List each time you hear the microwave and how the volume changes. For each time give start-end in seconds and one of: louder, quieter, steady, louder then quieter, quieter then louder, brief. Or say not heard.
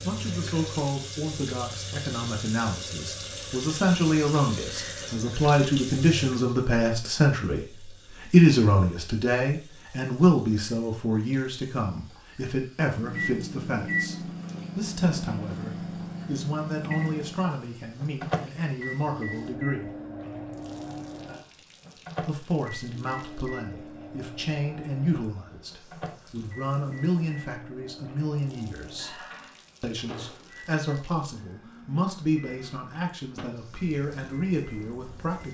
12.9-35.4 quieter.